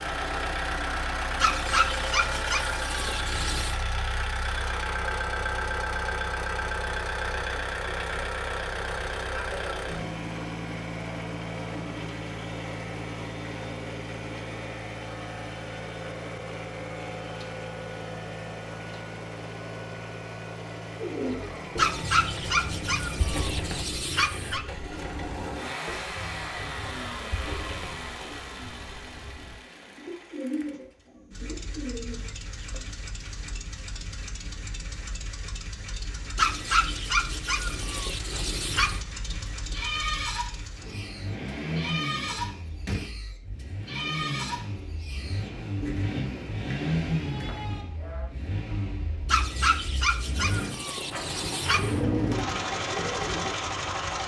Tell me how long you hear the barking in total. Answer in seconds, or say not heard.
11 s.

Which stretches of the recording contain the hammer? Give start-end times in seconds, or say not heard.
not heard.